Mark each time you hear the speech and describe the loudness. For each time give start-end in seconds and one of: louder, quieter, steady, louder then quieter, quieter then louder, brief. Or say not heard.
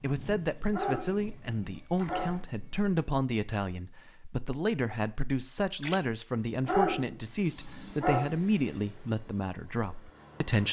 0.0-10.6 steady.